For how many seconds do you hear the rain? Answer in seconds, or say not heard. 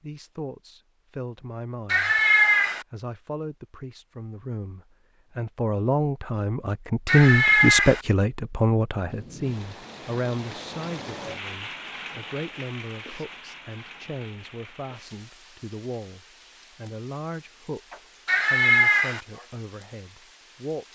12 s.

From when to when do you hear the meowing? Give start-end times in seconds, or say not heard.
1.9-2.9, 7.0-8.0, 18.2-19.2.